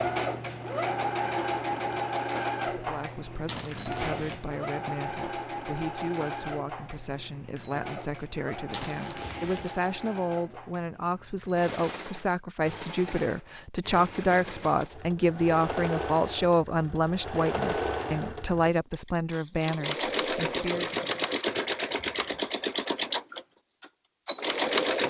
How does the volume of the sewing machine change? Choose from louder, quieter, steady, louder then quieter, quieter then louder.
quieter then louder.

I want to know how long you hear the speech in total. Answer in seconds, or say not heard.
18 s.